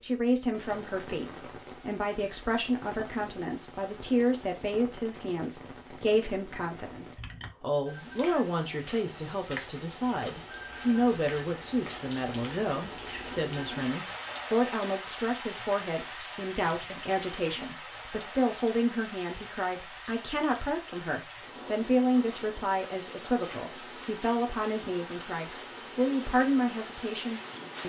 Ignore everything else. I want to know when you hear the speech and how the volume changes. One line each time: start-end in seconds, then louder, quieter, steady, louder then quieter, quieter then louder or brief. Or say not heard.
0.0-27.8 steady.